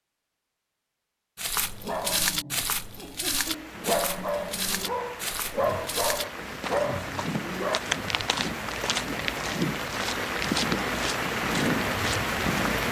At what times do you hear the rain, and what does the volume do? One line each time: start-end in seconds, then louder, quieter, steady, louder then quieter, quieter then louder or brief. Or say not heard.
3.2-12.8 louder.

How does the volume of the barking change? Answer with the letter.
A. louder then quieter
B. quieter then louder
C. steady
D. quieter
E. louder
E.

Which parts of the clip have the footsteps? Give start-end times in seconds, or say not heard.
1.4-12.8.